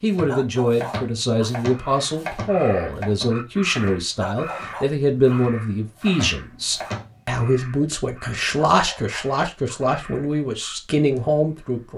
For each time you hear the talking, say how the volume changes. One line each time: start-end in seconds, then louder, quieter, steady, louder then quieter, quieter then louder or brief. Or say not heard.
0.0-11.9 steady.